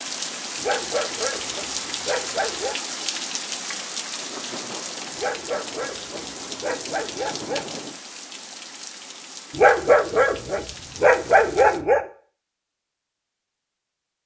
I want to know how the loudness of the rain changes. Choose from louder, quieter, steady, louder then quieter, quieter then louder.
quieter.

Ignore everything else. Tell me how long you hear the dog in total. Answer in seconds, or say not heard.
7 s.